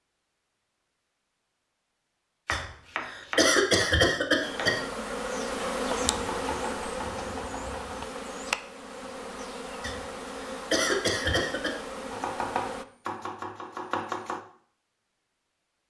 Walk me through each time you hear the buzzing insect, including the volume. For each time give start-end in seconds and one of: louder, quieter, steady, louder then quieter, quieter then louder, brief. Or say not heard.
4.4-12.8 quieter.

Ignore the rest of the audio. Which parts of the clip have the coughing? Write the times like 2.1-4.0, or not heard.
2.5-4.8, 9.8-11.8.